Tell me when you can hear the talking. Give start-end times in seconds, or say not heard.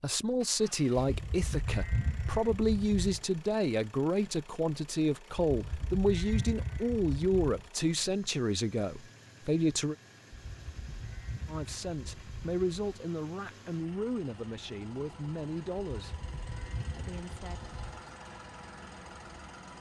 0.0-9.9, 11.4-16.2, 16.9-17.8.